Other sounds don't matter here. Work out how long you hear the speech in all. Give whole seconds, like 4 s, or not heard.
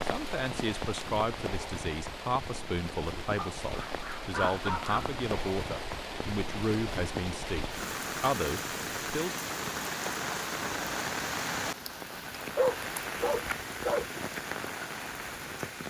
9 s.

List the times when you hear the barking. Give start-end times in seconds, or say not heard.
3.4-5.2, 12.6-14.1.